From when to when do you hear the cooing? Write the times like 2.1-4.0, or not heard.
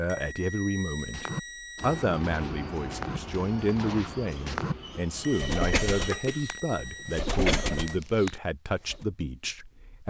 0.9-9.1.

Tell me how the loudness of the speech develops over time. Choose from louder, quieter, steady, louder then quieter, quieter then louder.
steady.